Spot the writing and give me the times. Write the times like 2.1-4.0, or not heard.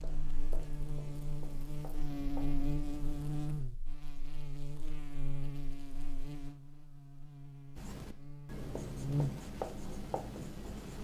0.0-3.6, 7.8-10.9.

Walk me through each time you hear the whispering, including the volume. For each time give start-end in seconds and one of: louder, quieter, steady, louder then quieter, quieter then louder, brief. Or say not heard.
not heard.